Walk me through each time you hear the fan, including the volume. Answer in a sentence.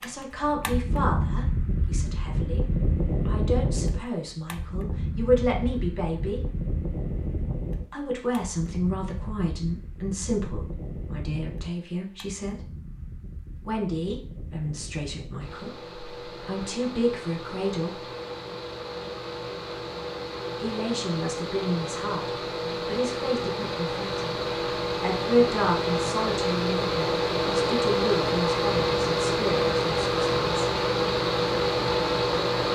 The fan can be heard from 0.0 to 32.7 s, getting quieter then louder.